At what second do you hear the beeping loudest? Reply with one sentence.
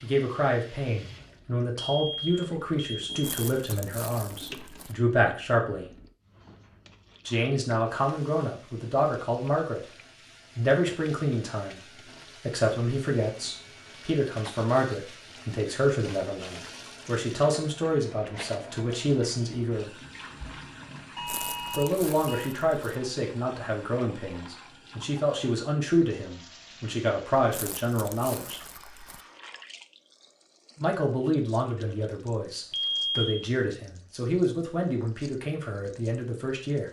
The volume of the beeping peaks at 33 seconds.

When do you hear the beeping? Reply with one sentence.
The beeping can be heard from 1.8 to 3.6 s, from 21.1 to 22.6 s and from 32.7 to 33.4 s.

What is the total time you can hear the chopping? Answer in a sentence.
You can't hear the chopping here.